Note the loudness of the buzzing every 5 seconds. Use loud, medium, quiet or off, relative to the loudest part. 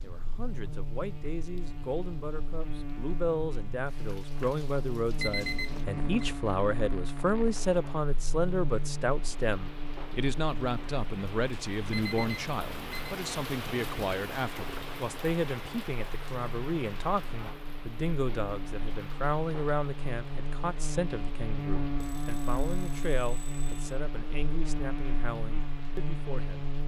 medium, loud, medium, medium, loud, loud.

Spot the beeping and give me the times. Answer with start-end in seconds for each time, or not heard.
5.2-6.2, 11.9-13.2, 22.0-23.9.